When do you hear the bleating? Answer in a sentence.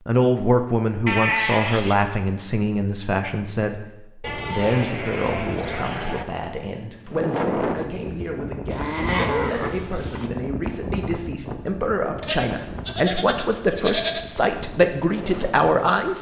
You can hear the bleating from 1.1 to 2.0 s, from 4.2 to 6.2 s, from 8.7 to 10.3 s and from 12.2 to 14.2 s.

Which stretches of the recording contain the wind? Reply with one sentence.
The wind can be heard from 7.0 to 16.1 s.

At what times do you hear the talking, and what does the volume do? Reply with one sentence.
The talking can be heard from 0.1 to 16.1 s, getting quieter then louder.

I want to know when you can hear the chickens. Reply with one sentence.
The chickens can't be heard in this clip.